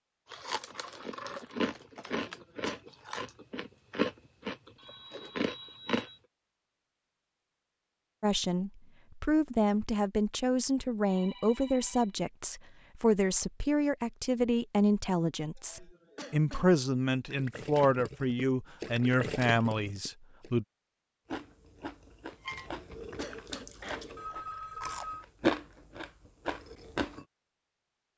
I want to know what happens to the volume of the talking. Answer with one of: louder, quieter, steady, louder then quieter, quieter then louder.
steady.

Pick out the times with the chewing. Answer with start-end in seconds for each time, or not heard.
0.3-6.1, 21.2-27.2.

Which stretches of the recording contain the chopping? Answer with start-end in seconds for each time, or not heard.
not heard.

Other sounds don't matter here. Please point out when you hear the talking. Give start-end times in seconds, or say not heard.
8.2-20.6.